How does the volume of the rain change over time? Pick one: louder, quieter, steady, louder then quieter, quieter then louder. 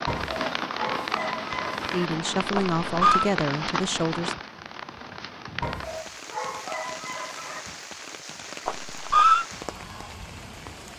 quieter.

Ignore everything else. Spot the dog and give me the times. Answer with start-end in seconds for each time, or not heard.
0.1-2.1, 5.6-7.7.